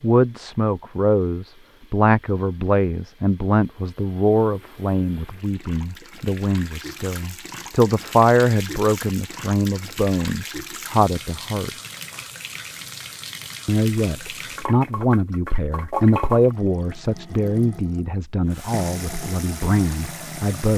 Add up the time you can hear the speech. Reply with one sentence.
The speech can be heard for 19 seconds in total.